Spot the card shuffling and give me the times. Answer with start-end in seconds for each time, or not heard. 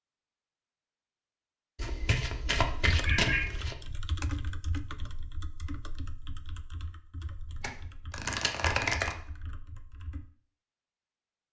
1.8-3.8, 7.6-9.2.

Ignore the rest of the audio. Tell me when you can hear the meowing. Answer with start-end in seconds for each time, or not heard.
2.5-3.5.